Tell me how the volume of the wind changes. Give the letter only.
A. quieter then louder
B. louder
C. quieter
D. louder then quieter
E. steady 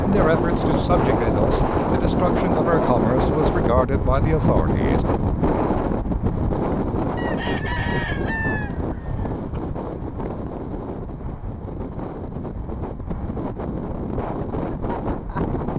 C.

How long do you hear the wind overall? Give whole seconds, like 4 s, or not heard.
16 s.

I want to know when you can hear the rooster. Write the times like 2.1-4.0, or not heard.
7.2-9.6.